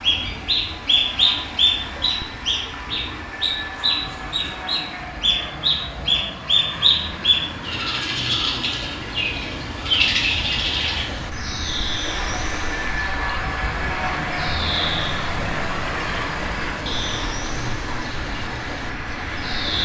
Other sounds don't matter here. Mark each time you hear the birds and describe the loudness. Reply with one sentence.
The birds can be heard from 0.0 to 19.7 s, getting quieter.